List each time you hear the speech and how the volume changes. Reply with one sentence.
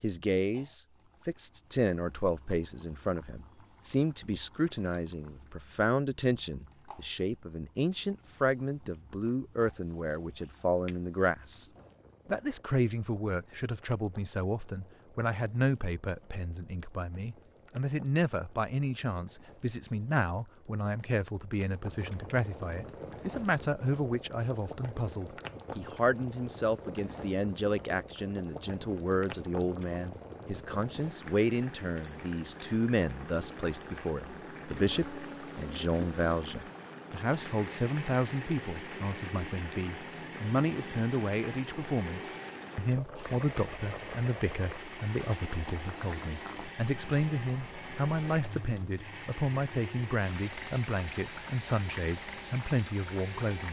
The speech can be heard from 0.0 to 11.7 s, at a steady volume; and from 12.2 to 53.6 s, at a steady volume.